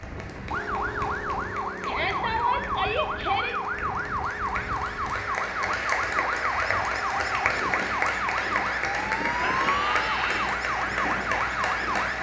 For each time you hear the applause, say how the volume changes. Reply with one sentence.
The applause can be heard from 0.0 to 12.1 s, getting louder.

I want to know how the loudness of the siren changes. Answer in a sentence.
The loudness of the siren stays about the same.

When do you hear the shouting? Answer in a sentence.
You can hear the shouting from 1.9 to 3.5 s and from 9.4 to 10.6 s.